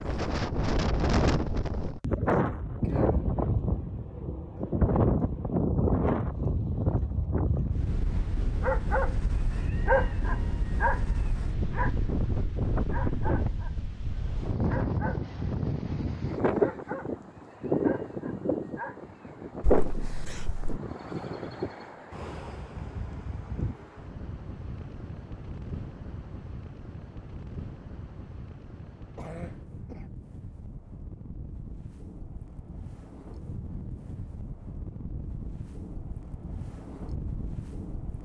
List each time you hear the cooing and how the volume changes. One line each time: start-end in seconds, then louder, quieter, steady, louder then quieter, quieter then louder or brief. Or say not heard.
not heard.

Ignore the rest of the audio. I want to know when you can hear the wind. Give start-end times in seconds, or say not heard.
0.0-38.2.